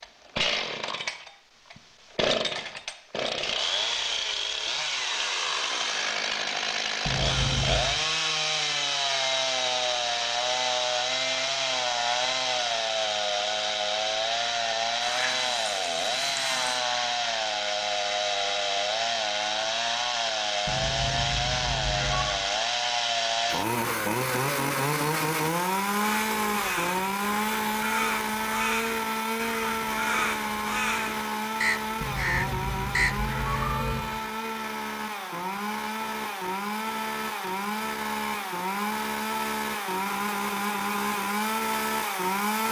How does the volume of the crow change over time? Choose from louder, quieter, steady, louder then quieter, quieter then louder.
louder.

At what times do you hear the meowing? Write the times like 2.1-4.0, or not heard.
7.0-7.8, 20.6-22.3, 32.0-34.0.